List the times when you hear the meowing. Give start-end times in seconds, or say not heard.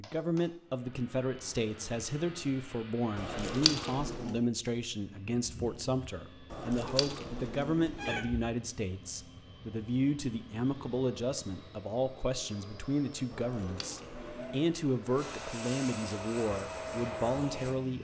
3.1-4.4, 6.5-8.2, 13.3-14.7.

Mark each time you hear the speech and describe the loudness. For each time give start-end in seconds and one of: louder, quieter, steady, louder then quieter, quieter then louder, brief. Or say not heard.
0.0-18.0 steady.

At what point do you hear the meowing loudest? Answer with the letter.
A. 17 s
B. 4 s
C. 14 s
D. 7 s
B.